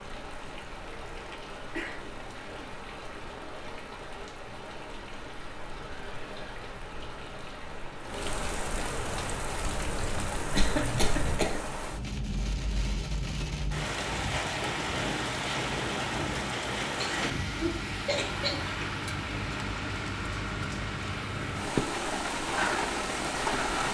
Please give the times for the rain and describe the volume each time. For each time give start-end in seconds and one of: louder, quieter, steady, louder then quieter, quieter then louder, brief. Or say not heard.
0.0-23.8 louder.